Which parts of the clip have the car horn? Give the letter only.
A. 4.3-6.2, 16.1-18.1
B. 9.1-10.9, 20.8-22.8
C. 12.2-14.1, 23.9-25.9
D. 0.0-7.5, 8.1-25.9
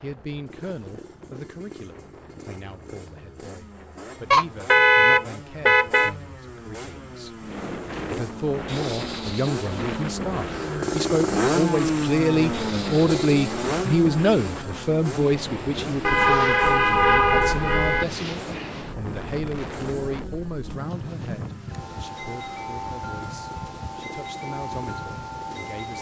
A.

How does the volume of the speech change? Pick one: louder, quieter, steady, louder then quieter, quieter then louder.
louder then quieter.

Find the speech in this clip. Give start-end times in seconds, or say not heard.
0.0-7.5, 8.1-25.9.